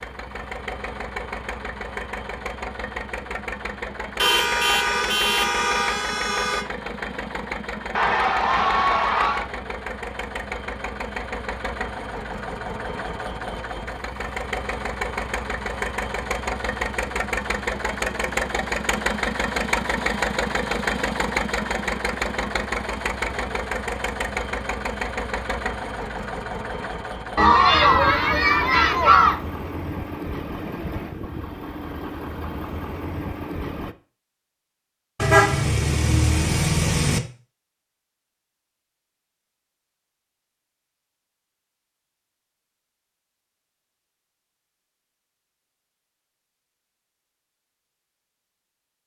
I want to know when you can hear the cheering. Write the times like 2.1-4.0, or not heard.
7.9-9.5, 27.4-29.4.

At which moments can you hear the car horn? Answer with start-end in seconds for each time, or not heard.
4.2-6.7, 35.1-37.2.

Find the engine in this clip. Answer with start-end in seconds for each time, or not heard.
0.0-34.0.